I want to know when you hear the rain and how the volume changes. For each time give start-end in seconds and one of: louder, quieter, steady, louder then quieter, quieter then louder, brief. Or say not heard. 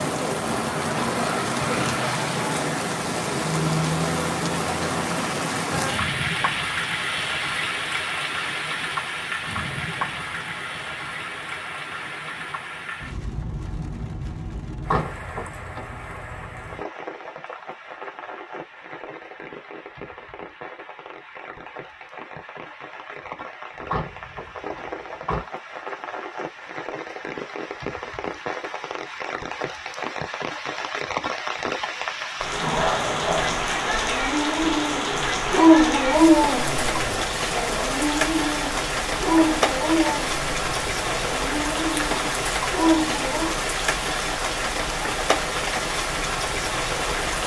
0.0-47.4 quieter then louder.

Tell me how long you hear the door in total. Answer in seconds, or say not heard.
3 s.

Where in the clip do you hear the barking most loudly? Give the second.
36 s.